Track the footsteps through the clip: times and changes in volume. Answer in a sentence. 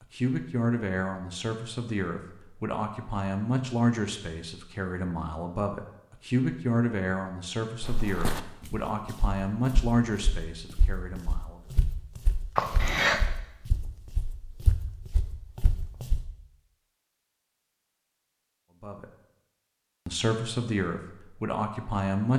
You can hear the footsteps from 7.8 to 16.2 s, getting quieter then louder.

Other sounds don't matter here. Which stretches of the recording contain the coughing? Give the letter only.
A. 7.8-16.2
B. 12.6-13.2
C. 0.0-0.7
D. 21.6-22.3
B.